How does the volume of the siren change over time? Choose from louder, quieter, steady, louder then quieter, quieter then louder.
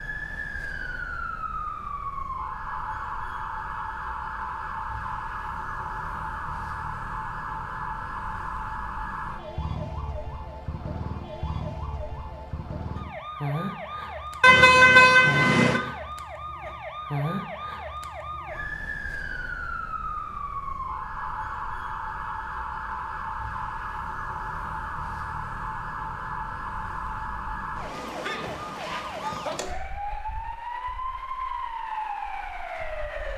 steady.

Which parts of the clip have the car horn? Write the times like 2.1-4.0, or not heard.
14.4-15.8.